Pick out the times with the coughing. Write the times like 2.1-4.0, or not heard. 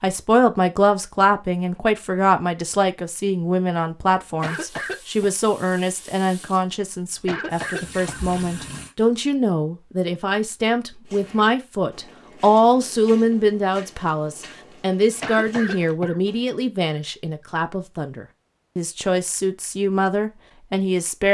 4.4-5.2, 7.2-8.2, 15.2-16.2.